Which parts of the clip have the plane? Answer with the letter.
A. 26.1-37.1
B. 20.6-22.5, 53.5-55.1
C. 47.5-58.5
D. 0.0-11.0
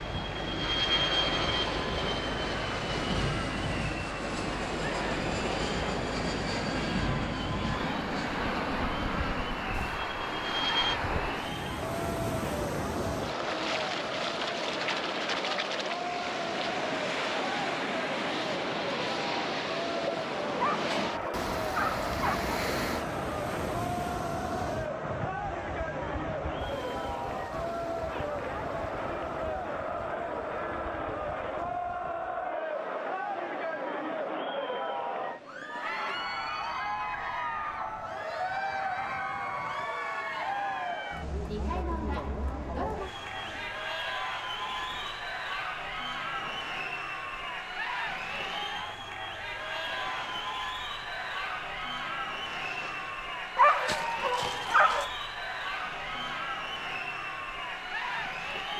D.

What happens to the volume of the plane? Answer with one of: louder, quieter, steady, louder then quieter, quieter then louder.
quieter.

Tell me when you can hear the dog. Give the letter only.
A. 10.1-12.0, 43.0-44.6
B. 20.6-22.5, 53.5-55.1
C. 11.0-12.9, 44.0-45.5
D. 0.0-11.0
B.